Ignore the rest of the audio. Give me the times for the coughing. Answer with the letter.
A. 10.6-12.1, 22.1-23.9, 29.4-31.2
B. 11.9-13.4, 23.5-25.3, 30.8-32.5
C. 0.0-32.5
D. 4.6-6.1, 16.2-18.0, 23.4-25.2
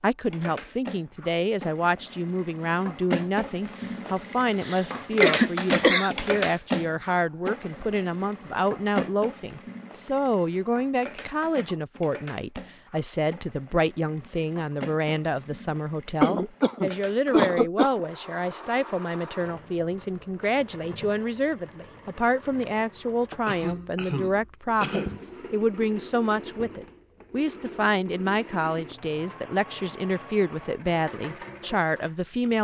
D.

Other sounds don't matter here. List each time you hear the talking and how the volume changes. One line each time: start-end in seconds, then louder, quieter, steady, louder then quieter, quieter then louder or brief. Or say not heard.
0.0-32.5 steady.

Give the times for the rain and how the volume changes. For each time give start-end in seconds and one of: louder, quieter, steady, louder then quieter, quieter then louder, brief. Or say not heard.
not heard.